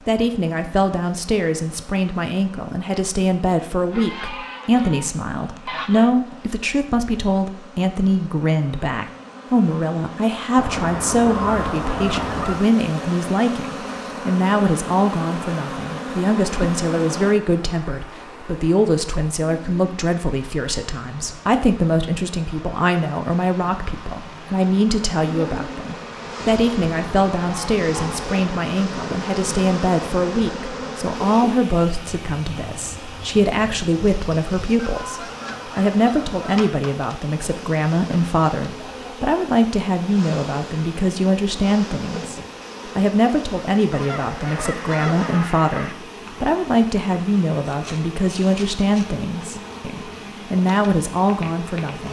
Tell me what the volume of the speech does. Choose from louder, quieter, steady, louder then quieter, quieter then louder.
steady.